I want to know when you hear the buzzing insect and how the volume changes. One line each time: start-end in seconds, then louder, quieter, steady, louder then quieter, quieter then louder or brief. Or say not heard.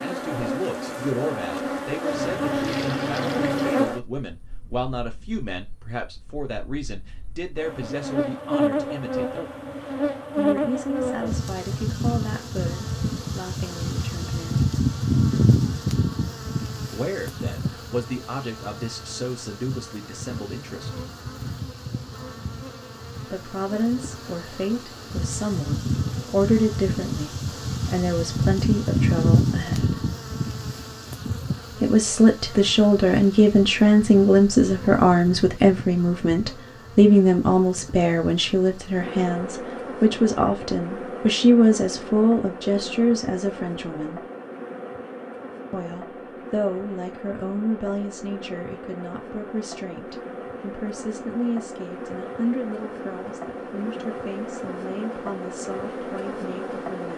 0.0-57.1 quieter.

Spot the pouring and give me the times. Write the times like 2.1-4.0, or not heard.
2.1-3.8.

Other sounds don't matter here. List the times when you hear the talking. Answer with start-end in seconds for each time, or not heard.
0.0-9.4, 10.3-14.7, 16.9-21.0, 23.2-30.1, 31.8-44.2, 45.7-57.1.